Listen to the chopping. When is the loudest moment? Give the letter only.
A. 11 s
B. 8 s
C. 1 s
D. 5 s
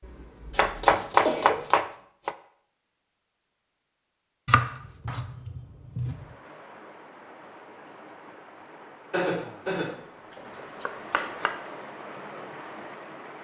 C.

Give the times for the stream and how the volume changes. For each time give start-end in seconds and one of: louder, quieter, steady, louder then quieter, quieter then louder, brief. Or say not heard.
6.0-13.3 louder.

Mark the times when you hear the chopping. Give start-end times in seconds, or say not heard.
0.6-2.4, 4.5-6.2, 9.8-11.6.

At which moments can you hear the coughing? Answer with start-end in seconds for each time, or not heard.
0.0-1.6, 9.1-9.9.